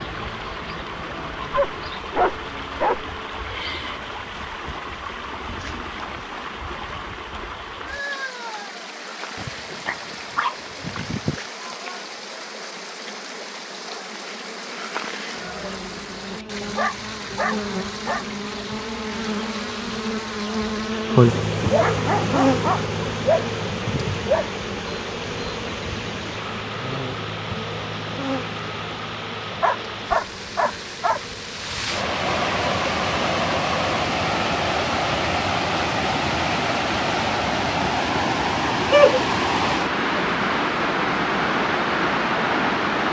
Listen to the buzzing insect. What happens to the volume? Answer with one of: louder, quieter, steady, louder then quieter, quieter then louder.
louder then quieter.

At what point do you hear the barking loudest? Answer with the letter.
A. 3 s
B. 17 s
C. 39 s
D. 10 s
C.